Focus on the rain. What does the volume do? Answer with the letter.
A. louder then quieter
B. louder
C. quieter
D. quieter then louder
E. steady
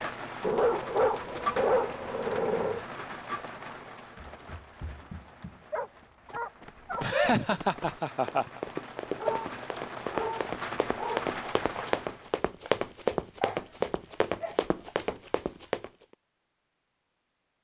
D.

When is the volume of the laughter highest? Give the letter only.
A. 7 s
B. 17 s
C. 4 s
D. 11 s
A.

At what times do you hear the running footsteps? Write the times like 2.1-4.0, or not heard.
4.2-15.9.